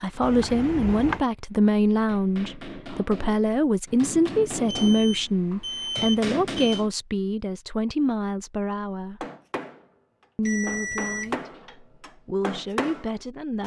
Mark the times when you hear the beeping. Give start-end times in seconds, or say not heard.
0.2-1.2, 4.7-6.8, 10.4-11.3.